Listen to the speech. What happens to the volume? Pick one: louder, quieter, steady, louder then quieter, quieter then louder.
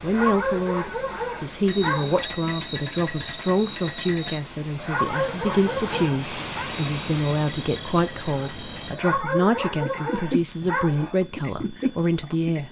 steady.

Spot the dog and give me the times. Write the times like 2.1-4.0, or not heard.
0.1-2.2, 4.8-6.7, 8.9-11.2.